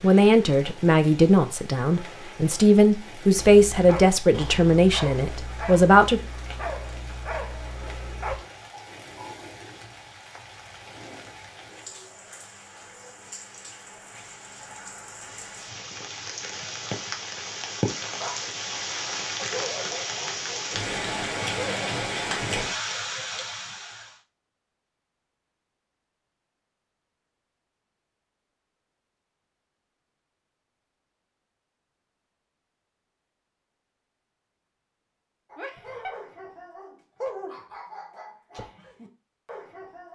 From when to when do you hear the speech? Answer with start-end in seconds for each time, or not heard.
0.0-6.2.